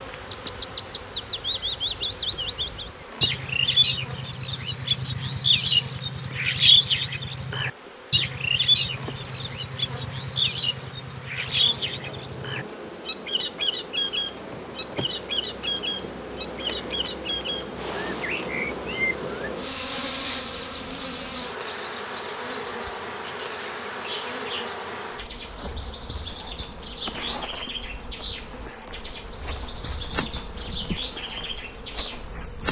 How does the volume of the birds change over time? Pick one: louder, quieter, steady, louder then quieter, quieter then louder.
quieter.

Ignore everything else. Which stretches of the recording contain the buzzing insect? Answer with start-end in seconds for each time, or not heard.
0.0-32.6.